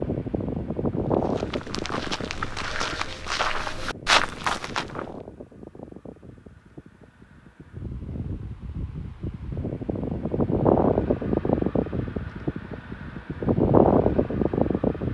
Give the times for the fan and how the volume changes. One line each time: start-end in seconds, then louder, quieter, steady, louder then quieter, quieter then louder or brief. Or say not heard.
0.0-15.0 quieter then louder.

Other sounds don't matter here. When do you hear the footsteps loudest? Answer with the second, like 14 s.
4 s.